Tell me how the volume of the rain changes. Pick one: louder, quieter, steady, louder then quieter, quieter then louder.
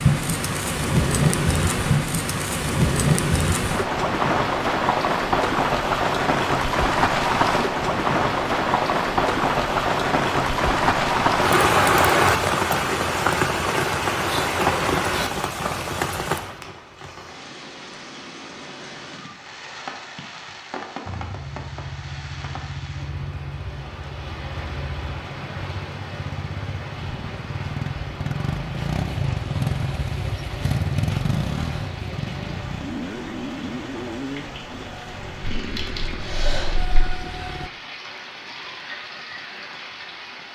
quieter.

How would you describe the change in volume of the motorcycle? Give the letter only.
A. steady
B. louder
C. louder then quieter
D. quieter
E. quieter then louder
C.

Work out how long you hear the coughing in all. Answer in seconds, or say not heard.
2 s.